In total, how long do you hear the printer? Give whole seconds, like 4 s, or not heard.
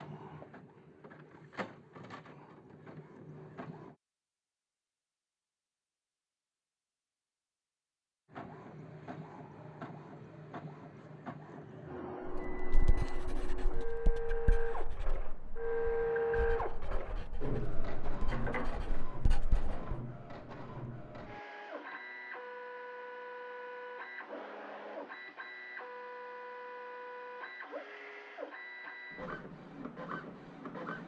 27 s.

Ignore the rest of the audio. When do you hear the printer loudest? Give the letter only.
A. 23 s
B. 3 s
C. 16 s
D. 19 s
C.